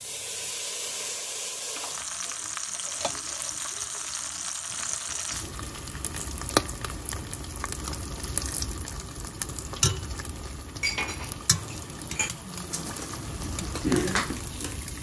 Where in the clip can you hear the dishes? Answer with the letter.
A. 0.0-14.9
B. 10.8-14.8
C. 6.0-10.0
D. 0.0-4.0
B.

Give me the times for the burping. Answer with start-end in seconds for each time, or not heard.
not heard.